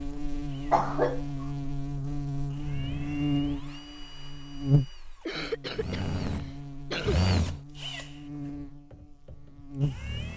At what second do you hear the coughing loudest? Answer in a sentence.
The volume of the coughing peaks at 1 second.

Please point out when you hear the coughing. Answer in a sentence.
You can hear the coughing from 0.7 to 1.2 s and from 5.2 to 7.2 s.